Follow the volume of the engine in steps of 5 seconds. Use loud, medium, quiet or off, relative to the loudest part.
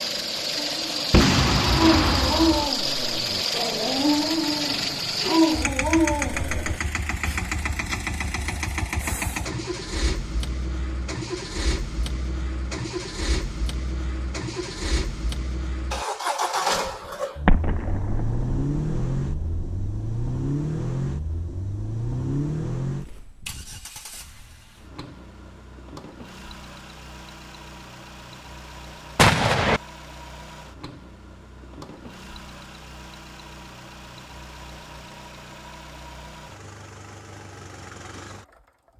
loud, loud, medium, loud, loud, quiet, quiet, quiet.